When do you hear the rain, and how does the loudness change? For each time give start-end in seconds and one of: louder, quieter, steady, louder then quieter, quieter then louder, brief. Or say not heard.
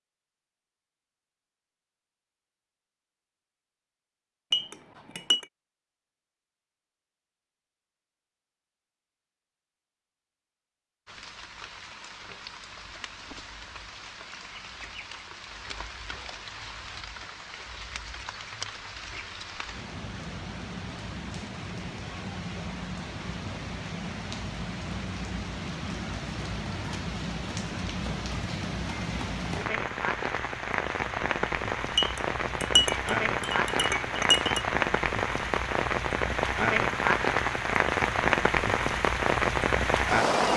11.1-40.5 louder.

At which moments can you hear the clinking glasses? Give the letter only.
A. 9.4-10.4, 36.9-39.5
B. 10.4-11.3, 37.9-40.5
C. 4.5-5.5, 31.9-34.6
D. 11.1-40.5
C.